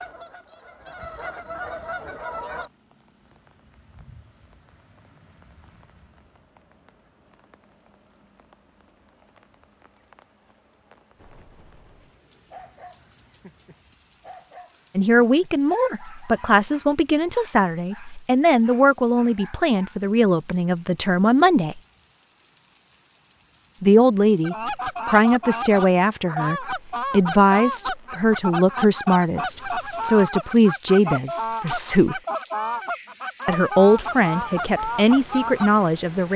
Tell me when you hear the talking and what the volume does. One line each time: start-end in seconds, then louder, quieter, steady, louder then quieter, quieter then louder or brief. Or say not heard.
14.9-21.8 steady
23.8-32.2 steady
33.5-36.3 brief.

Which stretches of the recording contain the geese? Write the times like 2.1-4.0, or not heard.
0.0-2.7, 24.4-35.9.